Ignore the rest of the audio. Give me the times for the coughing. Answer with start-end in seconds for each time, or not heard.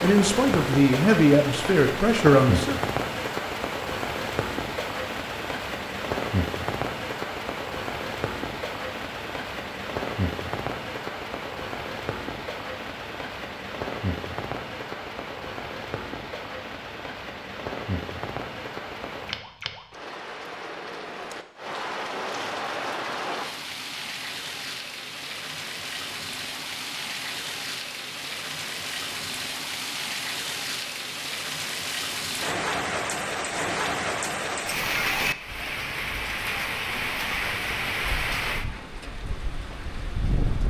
not heard.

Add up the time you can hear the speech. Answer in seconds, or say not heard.
3 s.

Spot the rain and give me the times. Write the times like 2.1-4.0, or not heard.
0.0-40.6.